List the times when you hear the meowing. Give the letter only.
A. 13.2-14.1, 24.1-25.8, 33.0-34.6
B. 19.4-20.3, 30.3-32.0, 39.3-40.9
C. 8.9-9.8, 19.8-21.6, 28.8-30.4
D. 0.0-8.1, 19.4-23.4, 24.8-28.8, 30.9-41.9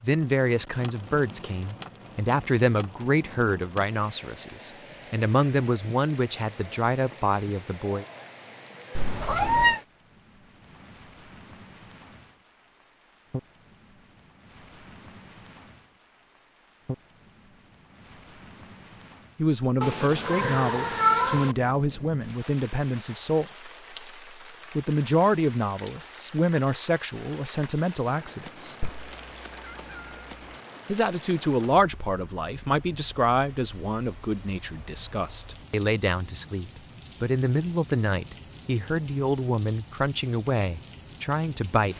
C.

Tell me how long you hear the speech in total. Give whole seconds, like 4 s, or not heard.
27 s.